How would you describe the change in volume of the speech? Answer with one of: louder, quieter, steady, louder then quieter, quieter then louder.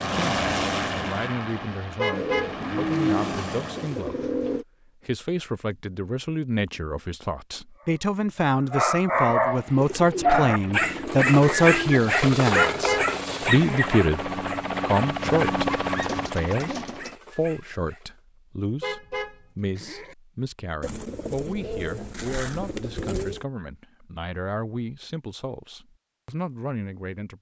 louder then quieter.